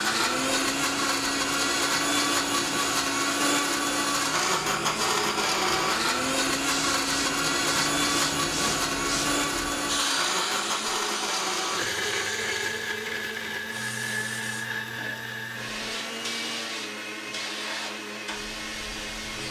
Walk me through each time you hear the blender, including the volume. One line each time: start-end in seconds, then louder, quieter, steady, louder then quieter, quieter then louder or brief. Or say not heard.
0.0-19.4 quieter.